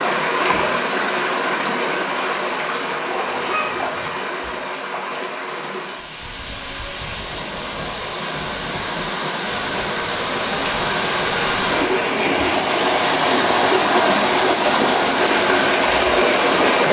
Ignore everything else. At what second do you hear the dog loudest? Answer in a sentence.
The volume of the dog peaks at 4 seconds.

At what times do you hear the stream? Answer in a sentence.
The stream can be heard from 0.0 to 16.8 s.